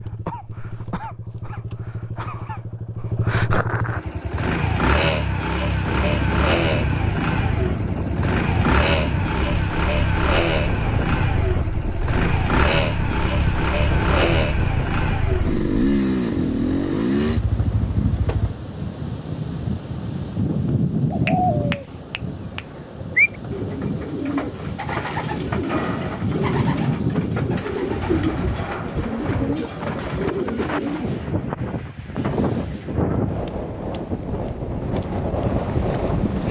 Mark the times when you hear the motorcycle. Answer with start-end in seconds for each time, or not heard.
0.0-18.6.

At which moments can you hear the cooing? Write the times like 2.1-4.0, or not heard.
21.1-31.4.